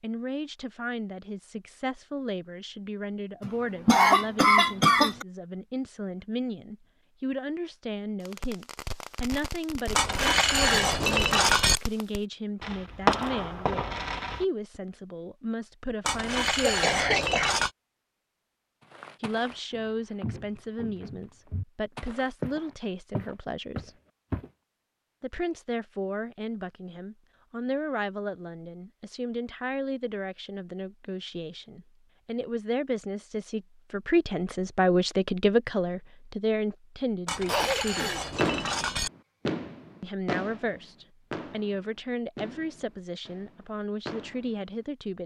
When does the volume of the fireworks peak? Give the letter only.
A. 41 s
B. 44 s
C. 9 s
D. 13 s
D.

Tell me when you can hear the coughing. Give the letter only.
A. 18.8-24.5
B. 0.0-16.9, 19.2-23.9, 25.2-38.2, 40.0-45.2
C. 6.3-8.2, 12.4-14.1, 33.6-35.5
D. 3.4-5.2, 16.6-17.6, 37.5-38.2
D.